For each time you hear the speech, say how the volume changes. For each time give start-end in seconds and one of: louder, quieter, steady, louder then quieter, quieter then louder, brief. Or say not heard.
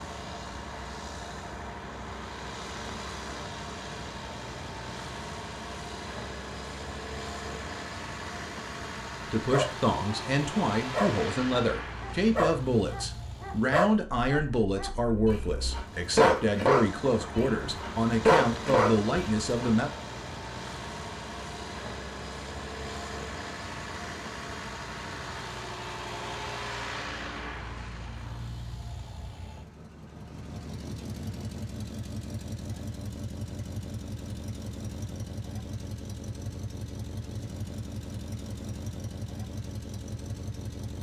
9.3-19.9 steady.